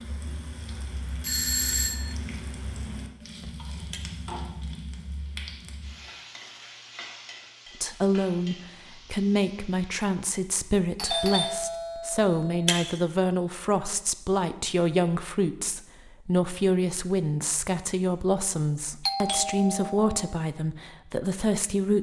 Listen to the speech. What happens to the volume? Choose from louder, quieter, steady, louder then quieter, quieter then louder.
steady.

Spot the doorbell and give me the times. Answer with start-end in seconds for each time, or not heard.
1.2-2.1, 10.9-12.8, 19.1-20.4.